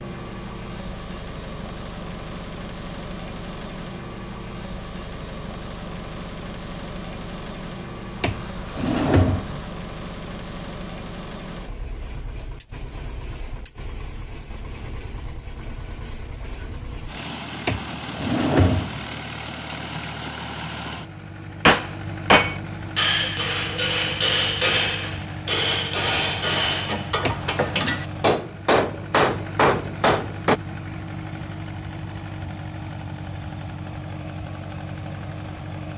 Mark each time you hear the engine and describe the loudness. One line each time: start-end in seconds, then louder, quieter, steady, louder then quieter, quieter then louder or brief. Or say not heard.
0.0-35.9 steady.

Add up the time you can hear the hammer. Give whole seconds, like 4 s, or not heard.
9 s.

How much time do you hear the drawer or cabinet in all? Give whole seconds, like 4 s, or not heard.
4 s.